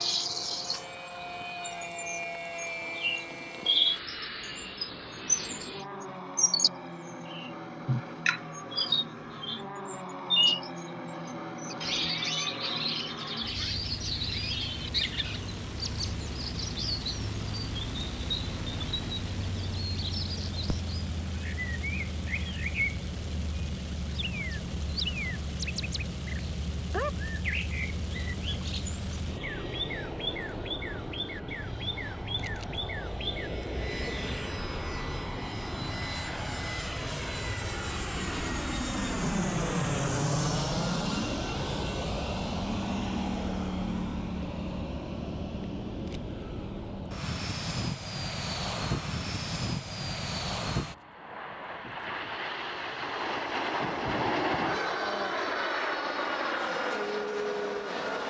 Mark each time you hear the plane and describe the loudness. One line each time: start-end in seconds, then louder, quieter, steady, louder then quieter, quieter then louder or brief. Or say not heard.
0.0-58.2 louder.